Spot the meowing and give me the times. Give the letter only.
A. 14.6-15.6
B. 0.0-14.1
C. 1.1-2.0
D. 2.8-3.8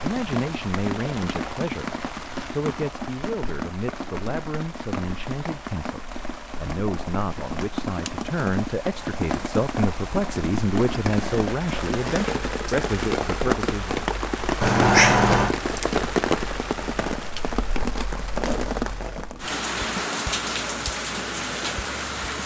A.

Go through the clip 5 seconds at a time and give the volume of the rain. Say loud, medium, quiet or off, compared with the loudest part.
medium, medium, loud, loud, loud.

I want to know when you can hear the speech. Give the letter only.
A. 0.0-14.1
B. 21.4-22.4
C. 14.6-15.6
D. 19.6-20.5
A.